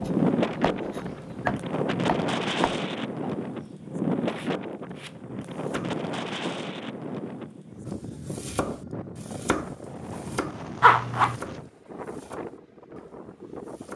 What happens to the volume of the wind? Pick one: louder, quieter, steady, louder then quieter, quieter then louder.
quieter.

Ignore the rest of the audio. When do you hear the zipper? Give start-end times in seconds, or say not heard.
10.8-11.4.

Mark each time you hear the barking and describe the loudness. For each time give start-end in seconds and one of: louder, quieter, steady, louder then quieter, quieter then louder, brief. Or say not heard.
not heard.